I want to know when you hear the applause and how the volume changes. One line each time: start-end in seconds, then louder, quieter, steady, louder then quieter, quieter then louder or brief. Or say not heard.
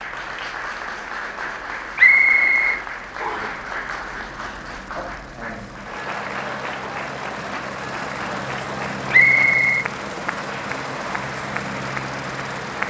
0.0-12.8 steady.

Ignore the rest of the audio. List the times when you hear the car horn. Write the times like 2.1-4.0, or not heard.
not heard.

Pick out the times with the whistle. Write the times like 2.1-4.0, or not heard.
1.9-3.5, 9.1-9.8.